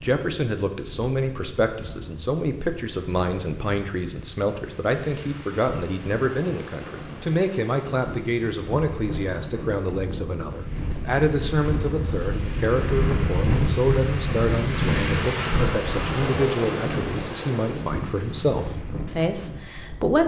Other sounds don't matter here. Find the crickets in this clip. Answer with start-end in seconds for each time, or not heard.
not heard.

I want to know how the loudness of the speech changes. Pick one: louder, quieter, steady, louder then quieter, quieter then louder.
steady.